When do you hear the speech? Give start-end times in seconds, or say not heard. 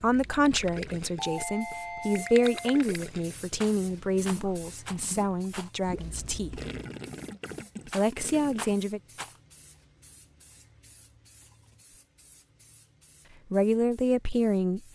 0.0-6.6, 7.8-9.0, 13.5-14.9.